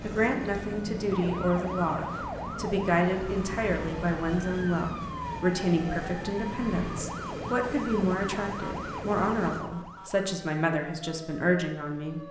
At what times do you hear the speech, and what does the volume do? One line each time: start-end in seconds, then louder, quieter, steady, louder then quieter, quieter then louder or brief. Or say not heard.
0.0-12.2 steady.